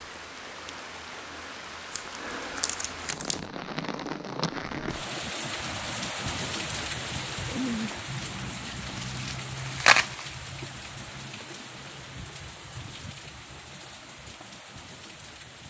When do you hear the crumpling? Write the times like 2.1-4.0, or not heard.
1.9-3.4, 8.3-10.2.